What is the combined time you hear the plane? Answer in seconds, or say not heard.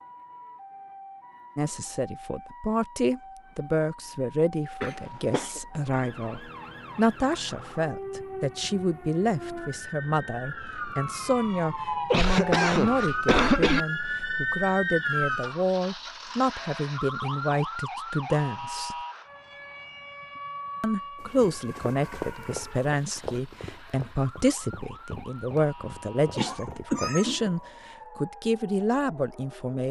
not heard.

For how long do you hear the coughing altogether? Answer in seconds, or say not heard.
4 s.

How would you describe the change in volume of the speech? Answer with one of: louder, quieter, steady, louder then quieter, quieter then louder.
steady.